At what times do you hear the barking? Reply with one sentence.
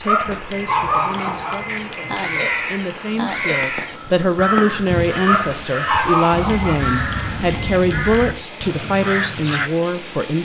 You can hear the barking from 0.1 to 1.6 s and from 5.2 to 6.8 s.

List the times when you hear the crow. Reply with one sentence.
The crow can be heard from 1.6 to 9.7 s.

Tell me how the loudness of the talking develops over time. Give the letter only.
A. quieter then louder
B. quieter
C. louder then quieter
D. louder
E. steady
D.